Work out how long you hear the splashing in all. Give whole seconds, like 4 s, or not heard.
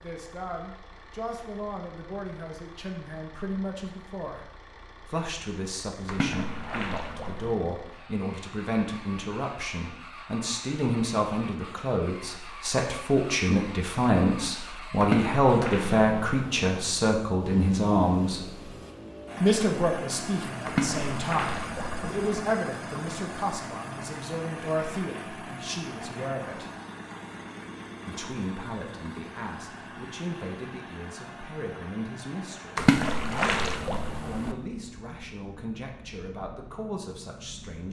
7 s.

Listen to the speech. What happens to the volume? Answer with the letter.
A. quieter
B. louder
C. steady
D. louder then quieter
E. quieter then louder
D.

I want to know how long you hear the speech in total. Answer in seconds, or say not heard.
36 s.